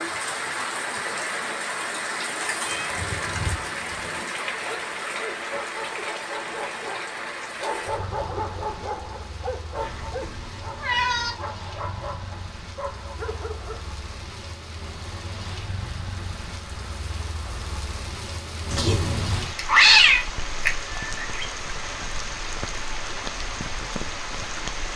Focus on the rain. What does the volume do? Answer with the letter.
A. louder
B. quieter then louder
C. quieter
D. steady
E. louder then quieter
B.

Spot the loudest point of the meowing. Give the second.
20 s.